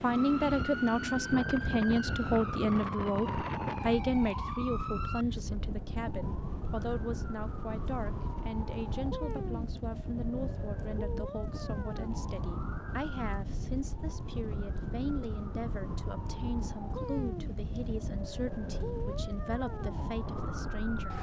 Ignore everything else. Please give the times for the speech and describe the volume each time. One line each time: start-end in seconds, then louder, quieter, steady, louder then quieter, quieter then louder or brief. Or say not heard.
0.0-21.1 quieter.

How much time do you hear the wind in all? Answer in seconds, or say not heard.
21 s.